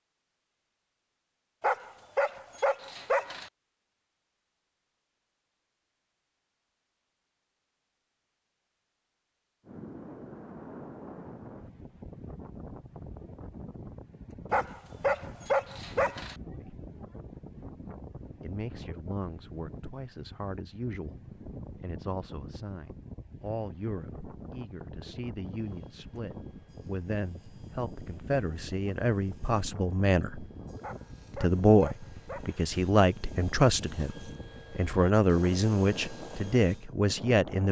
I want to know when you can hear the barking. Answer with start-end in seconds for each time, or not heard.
1.6-3.5, 14.5-16.4, 30.8-32.7.